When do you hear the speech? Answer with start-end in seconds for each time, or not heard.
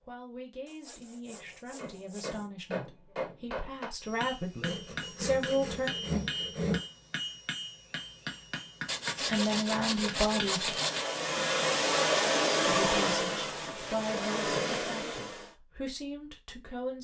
0.0-5.9, 9.2-10.8, 12.6-16.9.